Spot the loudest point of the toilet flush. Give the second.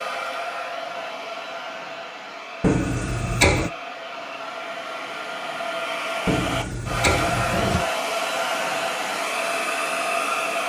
3 s.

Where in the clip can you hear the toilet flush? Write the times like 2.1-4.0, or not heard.
2.6-3.7, 6.2-7.8.